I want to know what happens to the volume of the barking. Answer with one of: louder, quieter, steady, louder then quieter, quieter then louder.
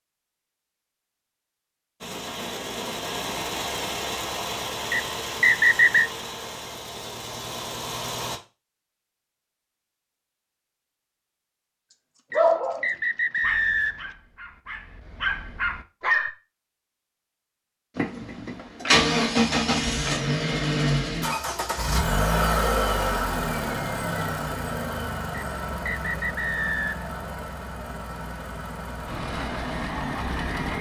quieter then louder.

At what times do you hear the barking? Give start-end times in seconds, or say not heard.
12.3-16.3.